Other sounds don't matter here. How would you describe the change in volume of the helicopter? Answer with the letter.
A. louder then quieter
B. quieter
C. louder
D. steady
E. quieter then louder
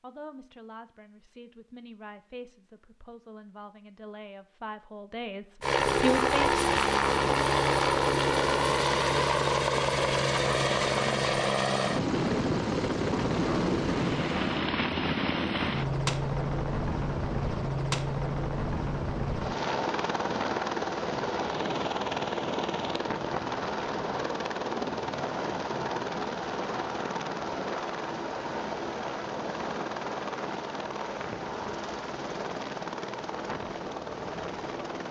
B.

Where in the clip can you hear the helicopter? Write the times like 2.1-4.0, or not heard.
5.6-35.0.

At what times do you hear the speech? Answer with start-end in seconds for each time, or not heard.
0.0-6.7.